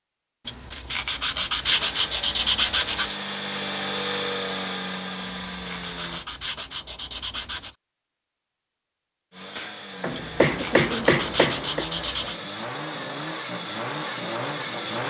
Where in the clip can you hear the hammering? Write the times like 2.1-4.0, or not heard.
9.6-11.8.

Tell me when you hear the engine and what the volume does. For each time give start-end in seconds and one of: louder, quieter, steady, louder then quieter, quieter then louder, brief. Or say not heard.
1.6-6.2 louder then quieter
9.3-15.0 louder.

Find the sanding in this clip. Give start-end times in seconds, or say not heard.
0.5-3.1, 5.2-7.8, 10.1-12.4.